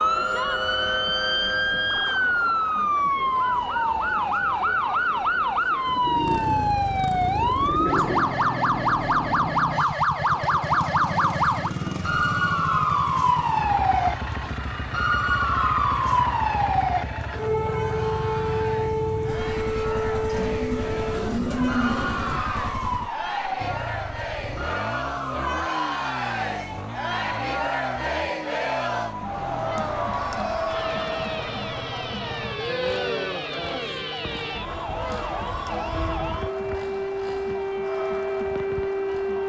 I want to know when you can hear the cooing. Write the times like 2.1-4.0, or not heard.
5.8-8.3, 20.4-22.4.